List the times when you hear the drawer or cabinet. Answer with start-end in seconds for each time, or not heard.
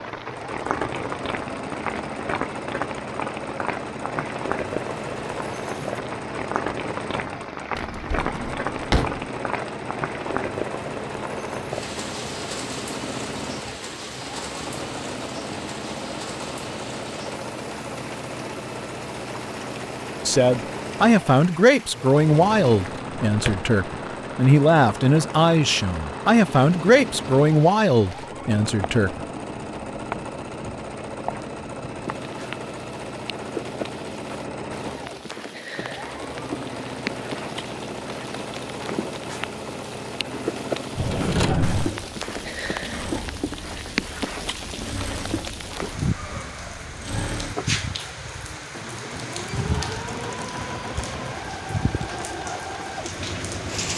7.8-9.2, 22.8-23.6, 41.0-41.9.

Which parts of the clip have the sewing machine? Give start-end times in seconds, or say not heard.
0.1-53.9.